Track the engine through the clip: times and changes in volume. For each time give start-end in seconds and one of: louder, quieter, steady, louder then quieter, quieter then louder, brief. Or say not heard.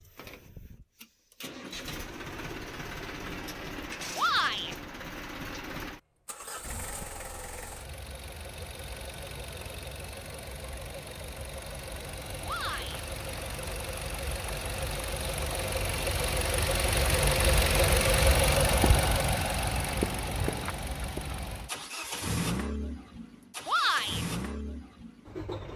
0.0-25.7 louder then quieter.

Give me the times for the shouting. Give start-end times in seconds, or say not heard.
4.2-4.8, 12.4-13.0, 23.6-24.2.